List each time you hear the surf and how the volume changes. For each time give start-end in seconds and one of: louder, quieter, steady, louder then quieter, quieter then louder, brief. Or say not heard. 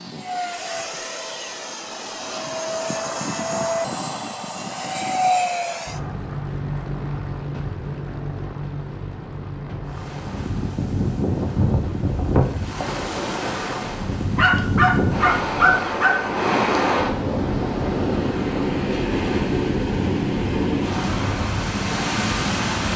9.9-22.9 steady.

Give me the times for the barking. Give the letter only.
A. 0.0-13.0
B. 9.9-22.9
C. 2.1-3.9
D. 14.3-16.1
D.